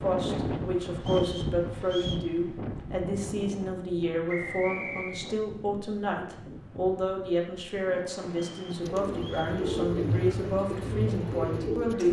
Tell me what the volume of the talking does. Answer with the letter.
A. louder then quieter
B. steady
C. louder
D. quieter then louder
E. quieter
B.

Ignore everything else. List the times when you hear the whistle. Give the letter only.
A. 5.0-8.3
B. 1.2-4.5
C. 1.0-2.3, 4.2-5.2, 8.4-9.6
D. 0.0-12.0
C.